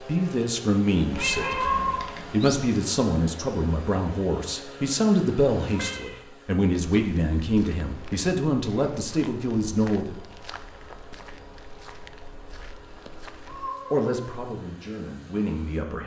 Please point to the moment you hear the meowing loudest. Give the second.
2 s.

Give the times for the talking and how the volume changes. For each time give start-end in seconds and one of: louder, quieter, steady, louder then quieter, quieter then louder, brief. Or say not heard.
0.0-10.2 steady
13.9-16.0 brief.